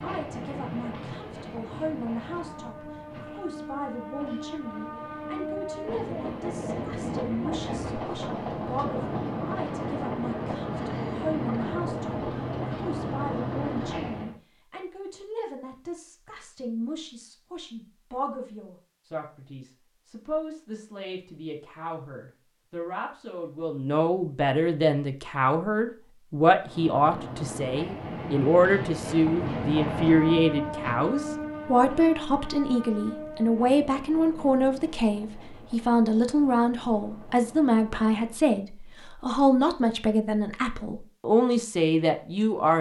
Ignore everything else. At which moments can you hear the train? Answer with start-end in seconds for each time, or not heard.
0.0-14.3, 26.6-38.5.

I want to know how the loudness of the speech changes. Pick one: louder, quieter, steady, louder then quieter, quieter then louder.
louder.